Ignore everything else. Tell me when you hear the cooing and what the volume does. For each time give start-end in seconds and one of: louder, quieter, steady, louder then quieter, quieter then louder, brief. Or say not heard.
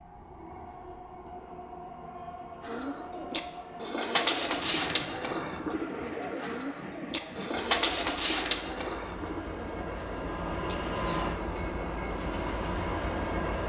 2.6-11.3 quieter.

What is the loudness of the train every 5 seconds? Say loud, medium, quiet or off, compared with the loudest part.
medium, medium, loud.